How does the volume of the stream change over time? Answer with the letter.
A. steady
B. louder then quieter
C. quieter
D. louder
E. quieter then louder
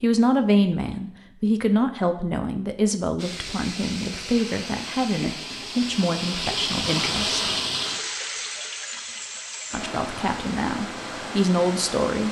B.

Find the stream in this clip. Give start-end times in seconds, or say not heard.
3.1-12.2.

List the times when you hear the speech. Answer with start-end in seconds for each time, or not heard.
0.0-7.4, 9.7-12.2.